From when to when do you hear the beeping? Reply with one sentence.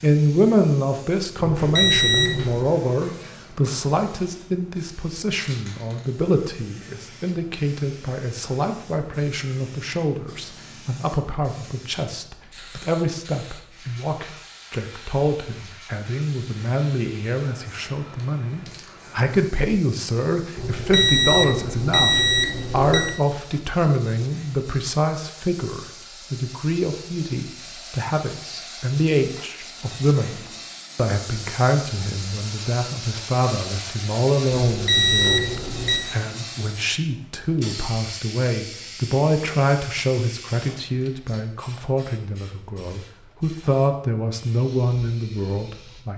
You can hear the beeping from 1.4 to 2.6 s, from 20.6 to 23.1 s and from 34.6 to 36.1 s.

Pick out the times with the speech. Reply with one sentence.
The speech can be heard from 0.0 to 46.1 s.